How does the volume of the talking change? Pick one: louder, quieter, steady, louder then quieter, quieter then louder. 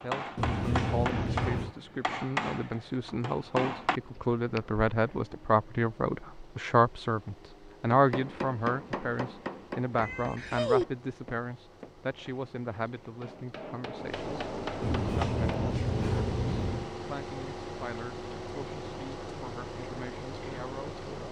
louder then quieter.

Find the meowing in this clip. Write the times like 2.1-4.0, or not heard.
0.3-1.8, 10.0-10.8, 14.8-16.9.